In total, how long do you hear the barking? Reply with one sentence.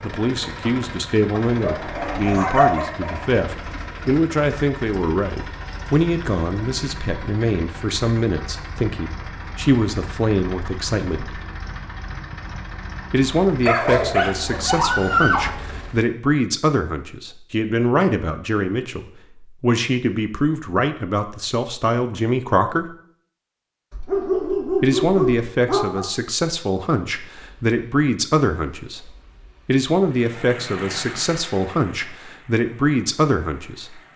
You can hear the barking for 6 seconds altogether.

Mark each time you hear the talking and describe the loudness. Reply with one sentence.
You can hear the talking from 0.0 to 11.3 s, at a steady volume; from 13.1 to 22.9 s, at a steady volume; and from 24.8 to 34.0 s, at a steady volume.